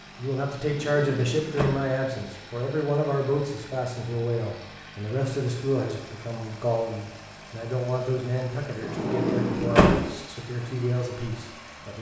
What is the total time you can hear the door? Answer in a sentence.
You can hear the door for 2 seconds altogether.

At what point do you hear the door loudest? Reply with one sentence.
The volume of the door peaks at 10 seconds.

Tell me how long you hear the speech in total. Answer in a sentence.
You can hear the speech for 12 seconds altogether.